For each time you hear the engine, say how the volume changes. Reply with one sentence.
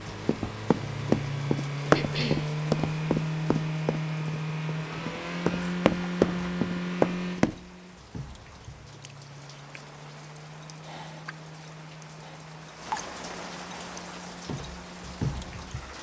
The engine can be heard from 0.0 to 15.9 s, getting quieter.